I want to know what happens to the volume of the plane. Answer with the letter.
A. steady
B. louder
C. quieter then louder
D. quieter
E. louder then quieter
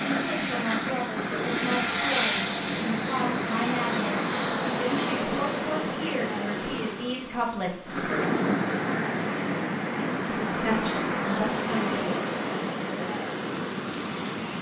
E.